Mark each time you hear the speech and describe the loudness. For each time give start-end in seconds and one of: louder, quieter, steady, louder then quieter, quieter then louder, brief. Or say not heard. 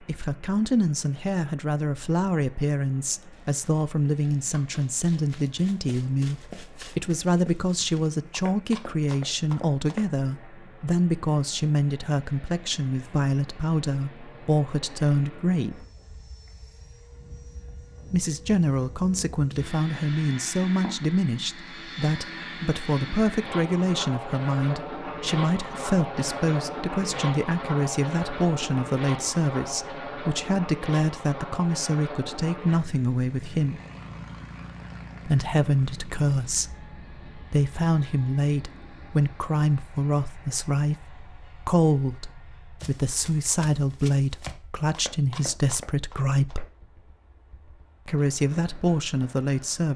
0.0-15.8 steady
18.1-33.8 steady
35.2-46.6 steady
48.0-49.9 brief.